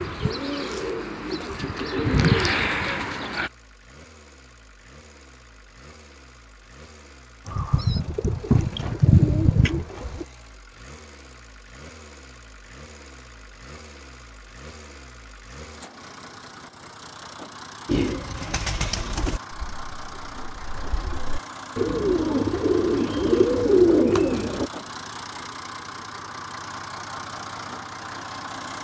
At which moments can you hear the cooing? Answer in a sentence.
The cooing can be heard from 0.0 to 3.5 s, from 7.5 to 10.2 s and from 17.9 to 24.7 s.